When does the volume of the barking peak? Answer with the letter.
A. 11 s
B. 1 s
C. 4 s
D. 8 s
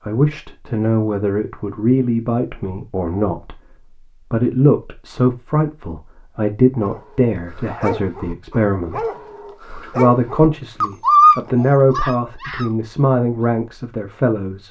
A.